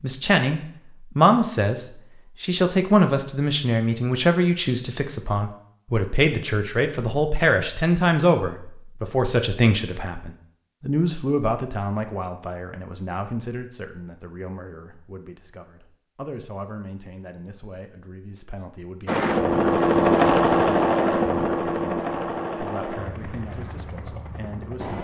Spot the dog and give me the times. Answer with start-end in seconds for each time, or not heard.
not heard.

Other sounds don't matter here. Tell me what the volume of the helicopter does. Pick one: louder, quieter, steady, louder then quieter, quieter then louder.
quieter.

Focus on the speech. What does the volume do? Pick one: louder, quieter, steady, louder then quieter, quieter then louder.
quieter.